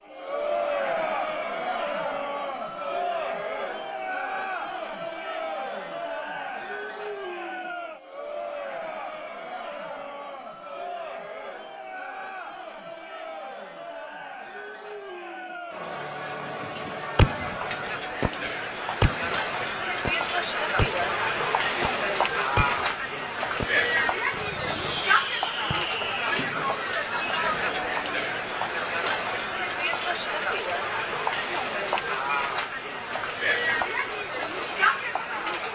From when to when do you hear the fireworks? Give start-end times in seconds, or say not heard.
16.6-19.4, 20.1-22.9, 23.6-26.8.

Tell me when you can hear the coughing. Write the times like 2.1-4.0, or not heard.
not heard.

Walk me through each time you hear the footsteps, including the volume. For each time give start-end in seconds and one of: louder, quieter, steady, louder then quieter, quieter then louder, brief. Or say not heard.
not heard.